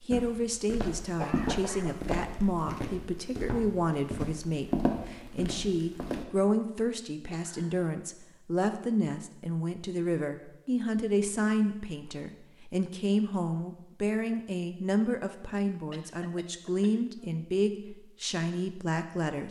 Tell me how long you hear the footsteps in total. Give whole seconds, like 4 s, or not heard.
6 s.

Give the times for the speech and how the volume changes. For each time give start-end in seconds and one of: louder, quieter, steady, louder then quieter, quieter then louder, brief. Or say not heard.
0.0-19.4 steady.